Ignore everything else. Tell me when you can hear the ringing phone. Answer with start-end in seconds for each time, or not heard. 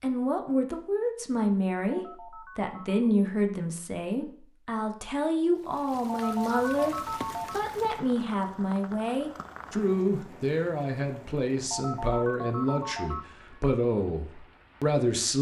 1.9-3.1, 6.0-7.6, 11.7-13.5.